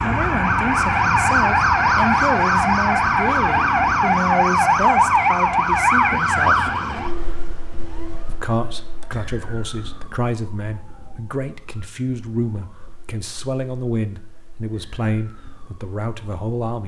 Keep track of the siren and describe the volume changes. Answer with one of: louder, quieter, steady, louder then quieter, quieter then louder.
quieter.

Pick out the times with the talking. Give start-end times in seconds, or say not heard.
0.0-6.8, 8.2-16.8.